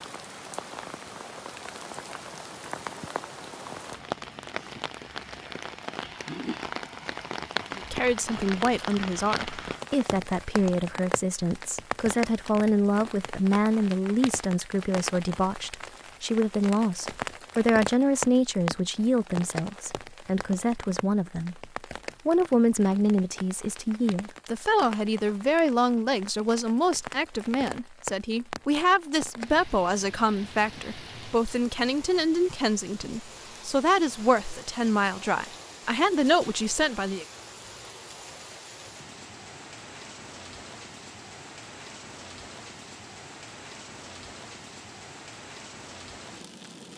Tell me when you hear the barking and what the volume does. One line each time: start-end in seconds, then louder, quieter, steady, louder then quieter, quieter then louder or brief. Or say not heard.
not heard.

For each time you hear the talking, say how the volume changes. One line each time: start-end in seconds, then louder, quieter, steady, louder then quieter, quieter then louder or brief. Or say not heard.
7.8-37.2 steady.